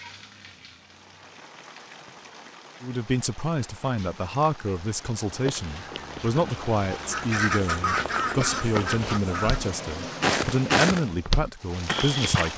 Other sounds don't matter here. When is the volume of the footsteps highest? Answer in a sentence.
The loudest moment of the footsteps is at 11 seconds.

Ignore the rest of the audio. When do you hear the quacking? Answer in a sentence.
The quacking can be heard from 7.0 to 9.7 s.